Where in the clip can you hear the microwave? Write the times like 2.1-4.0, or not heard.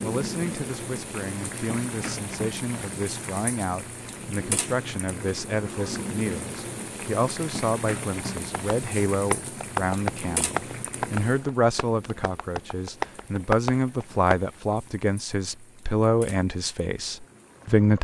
not heard.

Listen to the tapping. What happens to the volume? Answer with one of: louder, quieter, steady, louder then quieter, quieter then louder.
quieter then louder.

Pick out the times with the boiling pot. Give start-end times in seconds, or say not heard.
0.0-17.9.